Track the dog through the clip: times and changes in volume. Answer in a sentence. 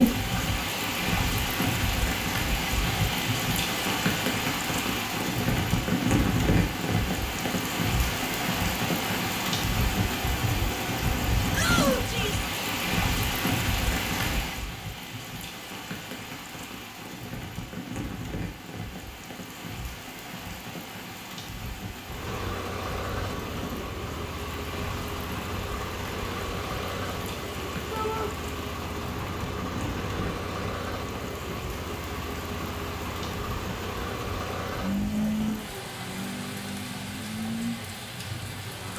You can't hear the dog here.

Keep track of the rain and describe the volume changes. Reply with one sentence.
The volume of the rain goes down.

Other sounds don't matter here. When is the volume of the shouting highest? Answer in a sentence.
The loudest moment of the shouting is at 12 seconds.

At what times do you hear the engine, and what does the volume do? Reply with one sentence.
The engine can be heard from 22.0 to 38.9 s, at a steady volume.